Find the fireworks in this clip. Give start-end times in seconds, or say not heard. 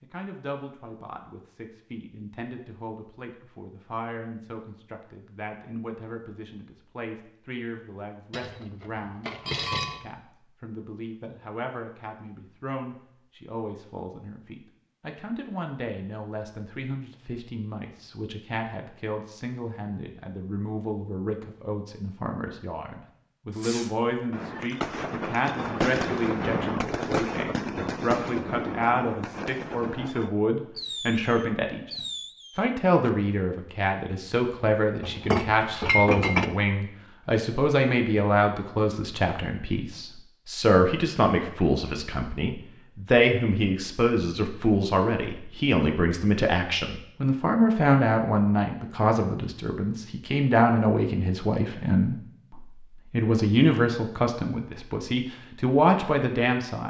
23.5-33.1.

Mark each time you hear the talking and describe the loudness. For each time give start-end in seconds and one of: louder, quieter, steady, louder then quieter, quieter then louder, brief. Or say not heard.
0.0-56.8 louder.